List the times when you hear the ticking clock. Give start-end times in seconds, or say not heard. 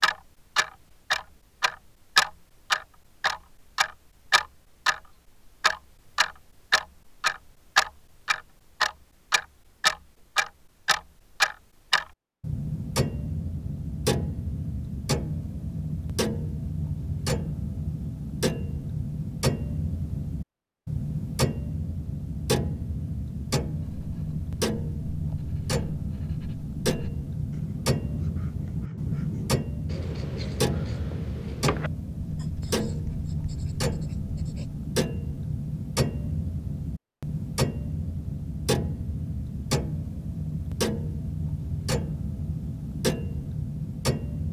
0.0-44.4.